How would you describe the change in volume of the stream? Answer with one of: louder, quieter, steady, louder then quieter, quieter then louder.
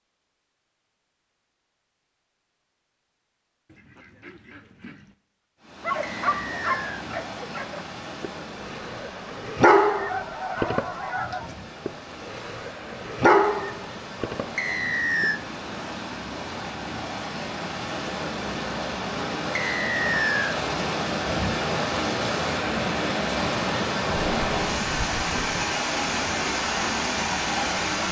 louder.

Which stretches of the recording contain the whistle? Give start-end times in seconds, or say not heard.
6.0-7.0, 14.6-15.4, 19.6-20.6.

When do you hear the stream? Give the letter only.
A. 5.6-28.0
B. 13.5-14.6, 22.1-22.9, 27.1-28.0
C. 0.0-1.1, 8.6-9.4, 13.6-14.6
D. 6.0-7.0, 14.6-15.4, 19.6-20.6
A.